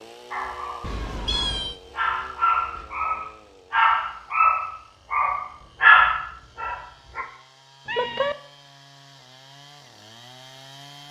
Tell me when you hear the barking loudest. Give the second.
6 s.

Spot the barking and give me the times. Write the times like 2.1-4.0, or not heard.
0.3-7.2.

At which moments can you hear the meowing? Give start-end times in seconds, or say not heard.
0.8-1.8, 7.8-8.3.